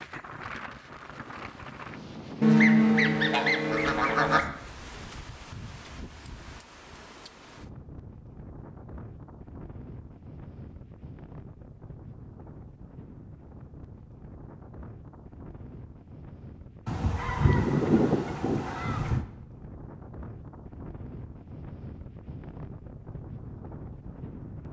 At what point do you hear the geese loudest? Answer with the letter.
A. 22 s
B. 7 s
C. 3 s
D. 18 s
C.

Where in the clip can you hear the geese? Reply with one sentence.
You can hear the geese from 2.4 to 4.5 s and from 16.9 to 19.2 s.